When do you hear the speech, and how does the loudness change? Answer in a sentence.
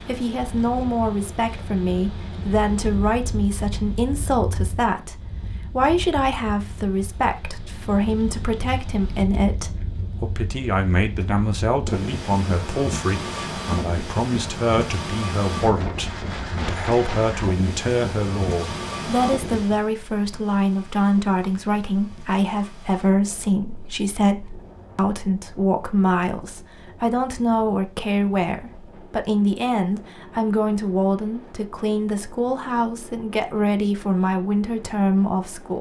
You can hear the speech from 0.0 to 35.7 s, at a steady volume.